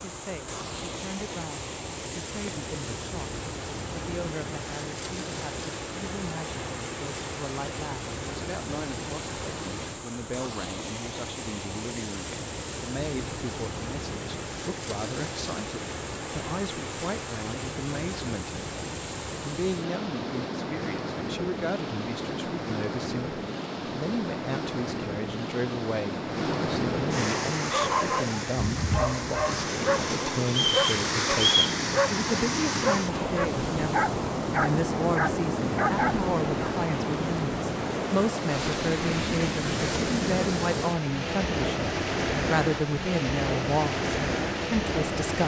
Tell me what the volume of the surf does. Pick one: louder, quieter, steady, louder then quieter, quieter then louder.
louder.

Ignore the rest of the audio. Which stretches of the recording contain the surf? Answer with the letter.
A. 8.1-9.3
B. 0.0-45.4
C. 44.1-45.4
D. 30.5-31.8
B.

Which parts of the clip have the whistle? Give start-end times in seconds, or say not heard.
30.5-31.8.